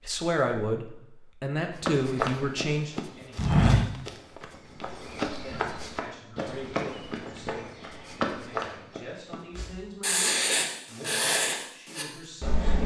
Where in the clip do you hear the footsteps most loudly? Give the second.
4 s.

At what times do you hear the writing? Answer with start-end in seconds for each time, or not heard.
9.6-12.8.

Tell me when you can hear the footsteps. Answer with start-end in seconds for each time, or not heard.
1.8-9.3.